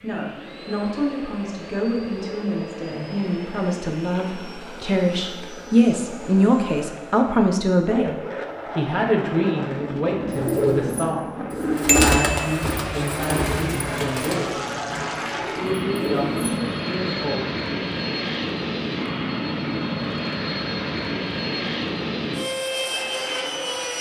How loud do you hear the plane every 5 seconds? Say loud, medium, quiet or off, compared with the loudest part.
medium, medium, loud, loud, loud.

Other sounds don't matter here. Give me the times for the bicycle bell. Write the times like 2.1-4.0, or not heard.
11.8-12.6.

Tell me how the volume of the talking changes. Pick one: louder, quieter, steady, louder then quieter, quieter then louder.
louder then quieter.